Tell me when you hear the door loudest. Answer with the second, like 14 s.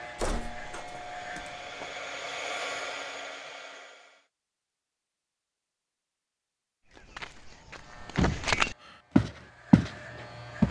8 s.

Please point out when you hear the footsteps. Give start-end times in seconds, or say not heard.
6.8-10.6.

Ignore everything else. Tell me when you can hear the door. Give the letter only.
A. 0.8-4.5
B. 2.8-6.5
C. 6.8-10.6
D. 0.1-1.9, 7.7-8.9
D.